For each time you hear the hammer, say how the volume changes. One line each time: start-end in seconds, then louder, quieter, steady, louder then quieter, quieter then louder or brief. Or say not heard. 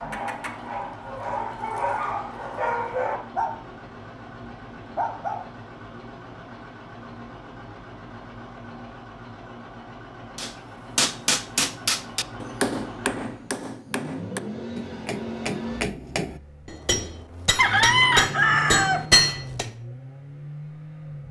10.3-19.7 quieter then louder.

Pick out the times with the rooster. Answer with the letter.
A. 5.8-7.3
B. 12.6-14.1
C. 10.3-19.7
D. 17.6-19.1
D.